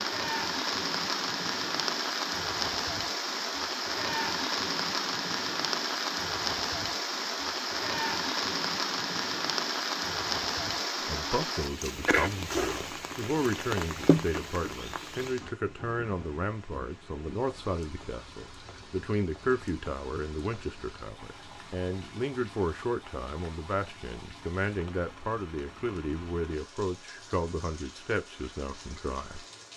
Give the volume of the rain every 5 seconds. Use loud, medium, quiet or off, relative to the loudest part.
loud, loud, loud, quiet, quiet, quiet.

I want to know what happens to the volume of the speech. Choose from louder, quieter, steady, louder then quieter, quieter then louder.
steady.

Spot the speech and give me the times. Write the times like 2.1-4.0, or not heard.
11.1-29.4.